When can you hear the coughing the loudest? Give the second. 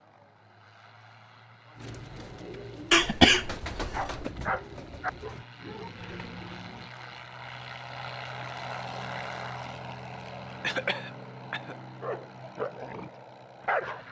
3 s.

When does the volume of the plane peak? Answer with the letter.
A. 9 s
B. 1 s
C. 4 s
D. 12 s
A.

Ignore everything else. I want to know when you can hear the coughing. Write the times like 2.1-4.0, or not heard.
2.9-4.3, 10.6-11.8.